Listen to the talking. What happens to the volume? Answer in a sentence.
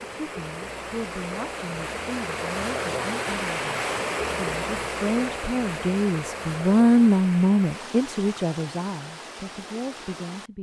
The loudness of the talking goes up, then down.